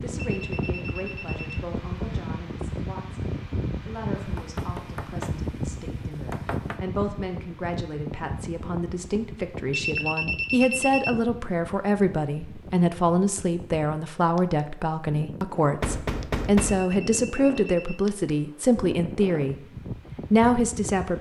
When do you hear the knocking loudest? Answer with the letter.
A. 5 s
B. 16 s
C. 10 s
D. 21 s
B.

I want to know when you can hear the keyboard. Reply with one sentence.
You can't hear the keyboard here.